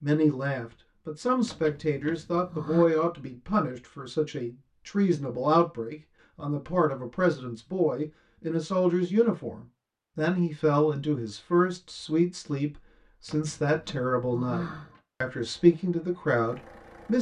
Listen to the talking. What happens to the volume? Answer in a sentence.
The loudness of the talking stays about the same.